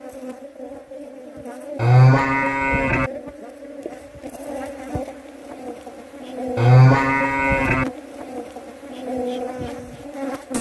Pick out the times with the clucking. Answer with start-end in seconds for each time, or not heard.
not heard.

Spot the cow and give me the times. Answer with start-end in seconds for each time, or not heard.
1.8-3.1, 6.5-7.8.